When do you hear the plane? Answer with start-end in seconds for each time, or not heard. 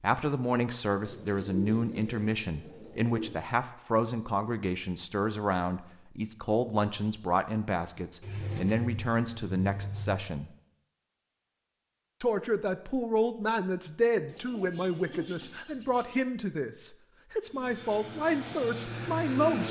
17.4-19.6.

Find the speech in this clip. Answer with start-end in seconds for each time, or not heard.
0.0-10.5, 12.2-19.6.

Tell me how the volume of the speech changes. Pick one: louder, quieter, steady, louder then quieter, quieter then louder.
steady.